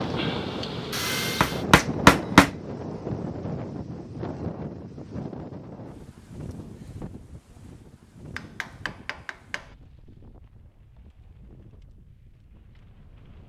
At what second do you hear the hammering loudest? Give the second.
2 s.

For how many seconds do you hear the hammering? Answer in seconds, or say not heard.
3 s.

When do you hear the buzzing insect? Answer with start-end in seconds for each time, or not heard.
0.0-1.6.